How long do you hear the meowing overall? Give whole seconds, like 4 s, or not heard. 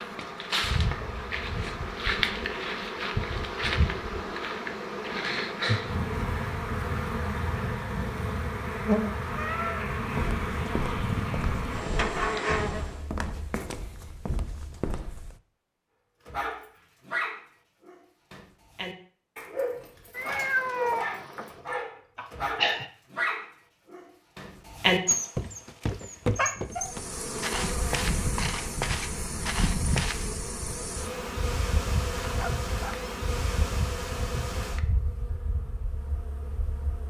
3 s.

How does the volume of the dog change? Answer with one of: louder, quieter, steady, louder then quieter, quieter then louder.
louder.